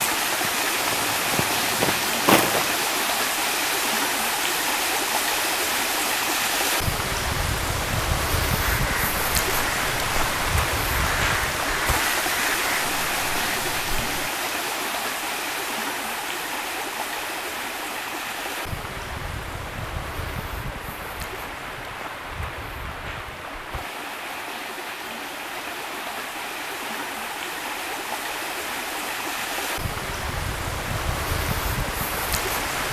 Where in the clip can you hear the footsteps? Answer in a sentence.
You can hear the footsteps from 0.0 to 2.9 s.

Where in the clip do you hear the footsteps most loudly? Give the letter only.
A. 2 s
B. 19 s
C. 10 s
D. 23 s
A.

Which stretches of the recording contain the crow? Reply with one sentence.
You can hear the crow from 8.6 to 14.3 s.